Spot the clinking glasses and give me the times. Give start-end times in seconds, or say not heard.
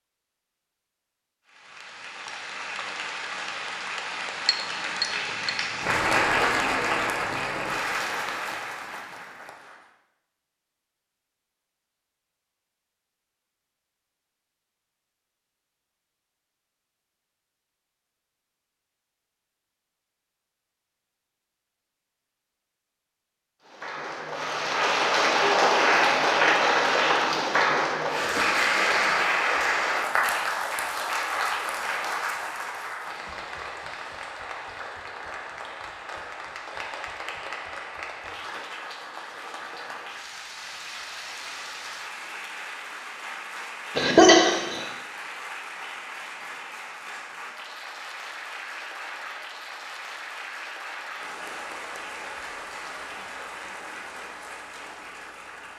4.5-5.5.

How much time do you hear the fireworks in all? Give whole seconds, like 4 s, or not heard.
not heard.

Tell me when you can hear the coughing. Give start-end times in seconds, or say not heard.
44.0-44.8.